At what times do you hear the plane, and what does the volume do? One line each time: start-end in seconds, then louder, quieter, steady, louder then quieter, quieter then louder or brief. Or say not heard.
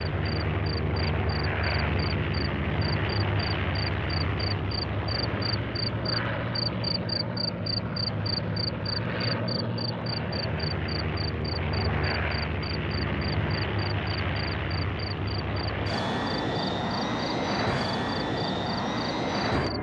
0.0-19.7 steady.